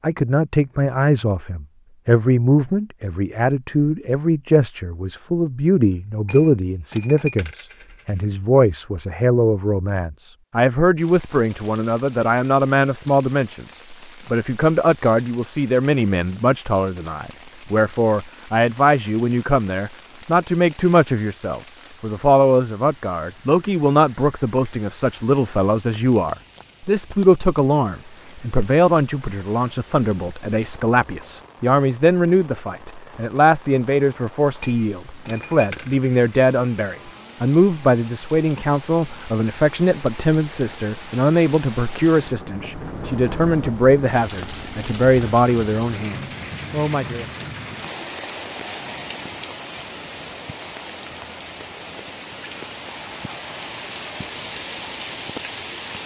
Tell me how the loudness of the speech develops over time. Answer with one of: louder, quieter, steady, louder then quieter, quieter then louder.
steady.